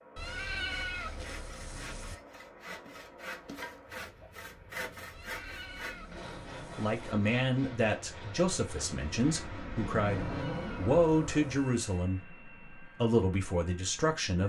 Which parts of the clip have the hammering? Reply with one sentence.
You can't hear the hammering here.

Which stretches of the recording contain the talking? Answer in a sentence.
The talking can be heard from 6.8 to 14.4 s.